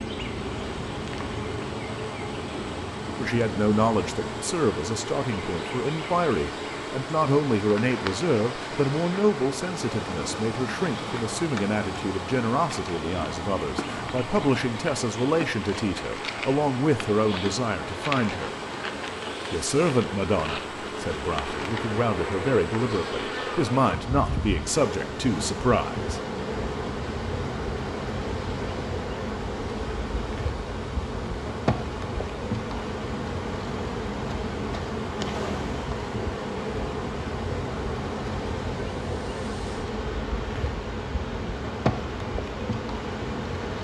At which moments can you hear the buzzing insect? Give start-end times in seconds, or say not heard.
0.0-43.7.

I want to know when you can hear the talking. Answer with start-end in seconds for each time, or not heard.
3.1-18.6, 19.5-26.2.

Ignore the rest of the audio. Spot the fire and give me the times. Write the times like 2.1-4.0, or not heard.
not heard.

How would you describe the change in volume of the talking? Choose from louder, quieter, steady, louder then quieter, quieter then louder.
steady.